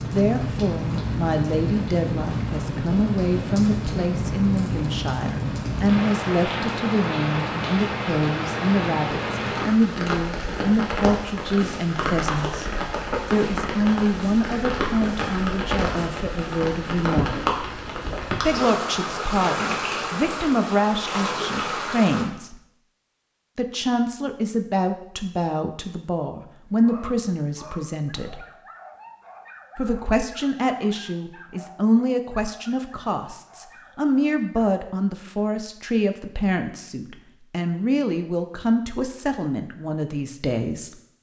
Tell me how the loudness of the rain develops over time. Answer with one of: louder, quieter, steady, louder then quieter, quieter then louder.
steady.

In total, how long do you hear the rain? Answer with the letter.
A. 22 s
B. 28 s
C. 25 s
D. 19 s
A.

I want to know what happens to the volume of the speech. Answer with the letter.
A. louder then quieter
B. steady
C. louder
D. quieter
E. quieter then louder
B.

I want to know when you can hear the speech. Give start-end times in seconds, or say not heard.
0.0-12.7, 13.3-17.4, 18.4-22.6, 23.6-28.4, 29.8-41.0.